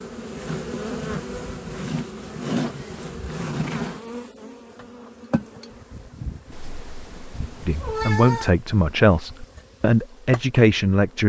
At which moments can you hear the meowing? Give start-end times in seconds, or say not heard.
6.5-8.6.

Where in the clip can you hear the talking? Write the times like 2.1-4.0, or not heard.
7.7-11.2.